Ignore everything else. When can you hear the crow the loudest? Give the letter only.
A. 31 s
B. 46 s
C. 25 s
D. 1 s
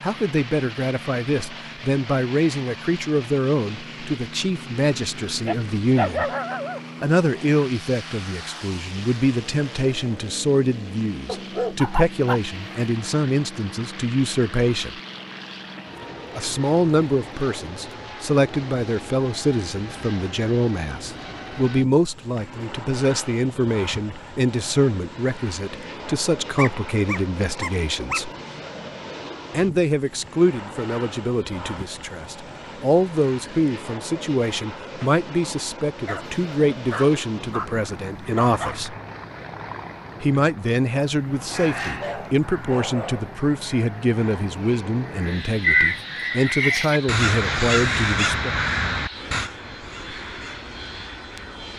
B.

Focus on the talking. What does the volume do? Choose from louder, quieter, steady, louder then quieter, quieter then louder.
steady.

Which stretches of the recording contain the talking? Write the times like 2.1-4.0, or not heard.
0.0-6.3, 7.0-14.9, 16.4-28.3, 29.5-39.0, 40.2-48.5.